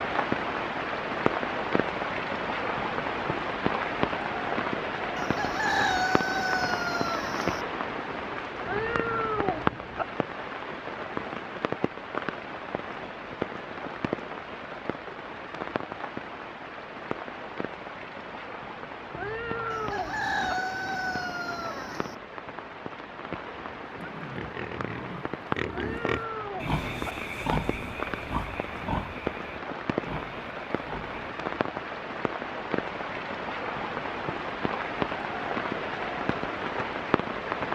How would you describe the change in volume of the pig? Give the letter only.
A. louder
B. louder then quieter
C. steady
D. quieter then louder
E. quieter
B.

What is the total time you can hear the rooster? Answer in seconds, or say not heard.
5 s.